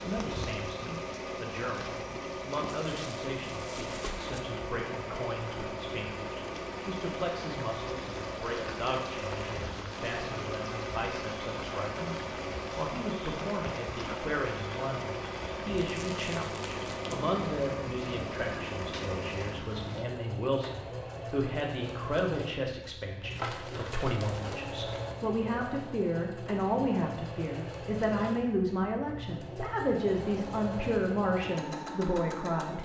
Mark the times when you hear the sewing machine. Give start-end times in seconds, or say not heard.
0.0-32.7.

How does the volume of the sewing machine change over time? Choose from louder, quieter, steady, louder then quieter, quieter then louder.
steady.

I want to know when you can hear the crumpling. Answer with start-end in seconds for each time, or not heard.
2.6-4.4, 15.8-17.2, 23.3-24.8.